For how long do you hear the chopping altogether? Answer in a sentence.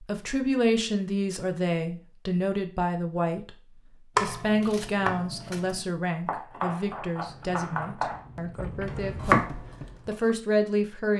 You can hear the chopping for 6 seconds altogether.